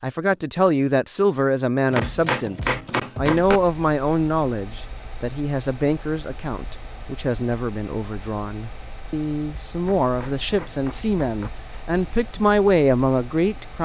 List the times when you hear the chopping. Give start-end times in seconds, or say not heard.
1.9-3.6, 9.8-11.5.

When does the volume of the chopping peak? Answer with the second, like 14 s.
3 s.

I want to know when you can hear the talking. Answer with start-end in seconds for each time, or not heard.
0.0-13.8.